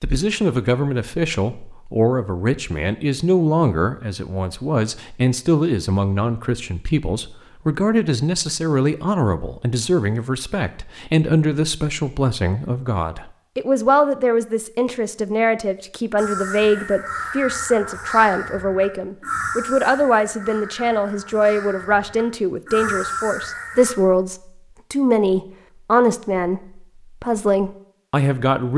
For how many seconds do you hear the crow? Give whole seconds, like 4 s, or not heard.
8 s.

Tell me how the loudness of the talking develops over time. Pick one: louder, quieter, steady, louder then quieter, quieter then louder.
steady.